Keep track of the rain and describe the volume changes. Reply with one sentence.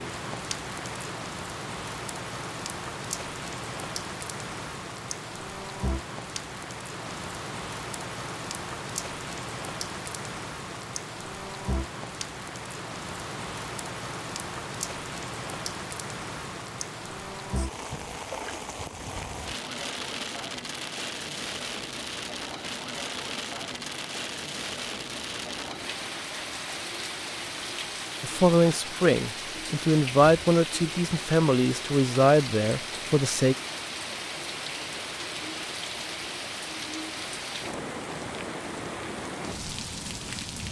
The volume of the rain stays about the same.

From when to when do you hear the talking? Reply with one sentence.
The talking can be heard from 28.2 to 33.5 s.